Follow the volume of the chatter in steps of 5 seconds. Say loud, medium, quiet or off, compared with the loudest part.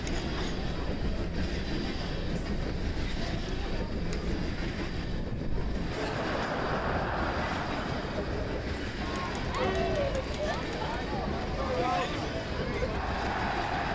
medium, loud, loud.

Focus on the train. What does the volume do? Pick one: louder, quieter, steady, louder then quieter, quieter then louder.
steady.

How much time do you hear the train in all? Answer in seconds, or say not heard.
14 s.